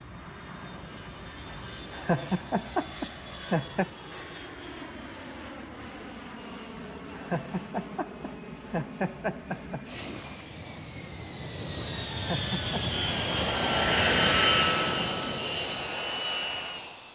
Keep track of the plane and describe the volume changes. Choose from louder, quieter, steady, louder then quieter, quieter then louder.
louder.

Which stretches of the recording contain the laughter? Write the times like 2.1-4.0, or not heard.
1.9-3.9, 7.2-9.8, 12.1-12.8.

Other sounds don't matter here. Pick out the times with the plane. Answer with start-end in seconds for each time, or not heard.
0.0-17.1.